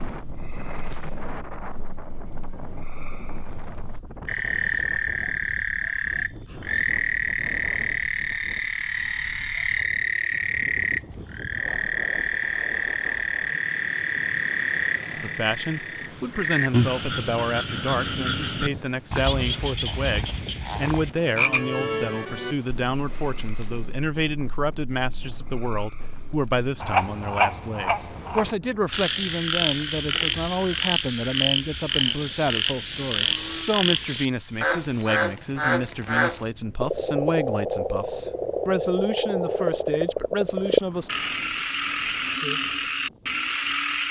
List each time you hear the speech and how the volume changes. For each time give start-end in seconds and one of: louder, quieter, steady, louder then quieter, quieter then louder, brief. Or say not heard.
15.1-41.1 steady.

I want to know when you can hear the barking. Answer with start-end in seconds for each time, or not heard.
not heard.